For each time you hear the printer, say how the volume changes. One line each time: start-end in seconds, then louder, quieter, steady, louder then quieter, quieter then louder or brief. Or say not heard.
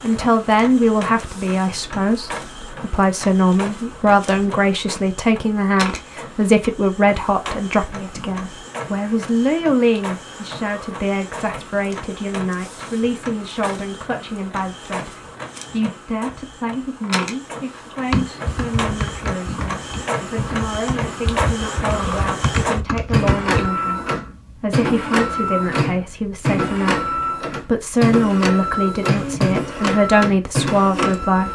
0.0-31.5 louder.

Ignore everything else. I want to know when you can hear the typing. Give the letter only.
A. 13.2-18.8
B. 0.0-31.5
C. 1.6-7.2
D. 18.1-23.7
D.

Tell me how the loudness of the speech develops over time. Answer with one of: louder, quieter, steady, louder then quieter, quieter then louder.
quieter then louder.